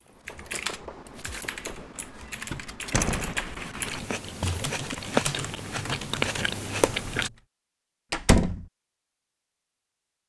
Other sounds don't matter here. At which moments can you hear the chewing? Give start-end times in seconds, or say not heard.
3.9-7.3.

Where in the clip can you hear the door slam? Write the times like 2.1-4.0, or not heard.
2.9-3.5, 8.1-8.7.